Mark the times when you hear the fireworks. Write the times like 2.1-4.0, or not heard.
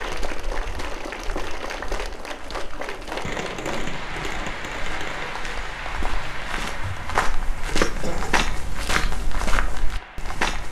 2.7-5.3.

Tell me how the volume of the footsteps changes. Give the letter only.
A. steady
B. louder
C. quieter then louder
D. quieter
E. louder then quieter
B.